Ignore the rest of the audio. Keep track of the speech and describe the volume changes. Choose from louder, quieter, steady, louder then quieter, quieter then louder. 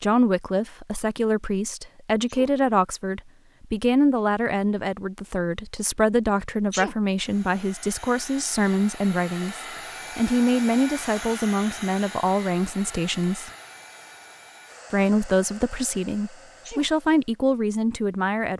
steady.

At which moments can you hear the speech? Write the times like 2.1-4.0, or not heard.
0.0-13.5, 14.9-18.5.